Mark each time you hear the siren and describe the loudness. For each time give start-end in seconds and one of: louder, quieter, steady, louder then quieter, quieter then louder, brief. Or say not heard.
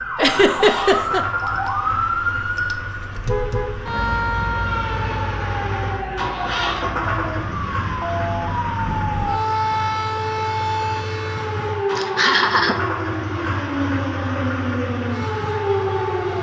0.0-16.3 steady.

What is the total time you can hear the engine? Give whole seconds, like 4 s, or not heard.
16 s.